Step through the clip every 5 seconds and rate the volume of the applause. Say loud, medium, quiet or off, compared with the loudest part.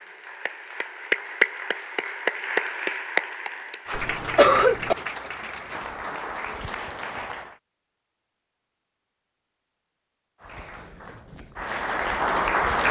loud, medium, loud.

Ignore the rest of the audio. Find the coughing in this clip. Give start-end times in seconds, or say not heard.
4.0-5.0.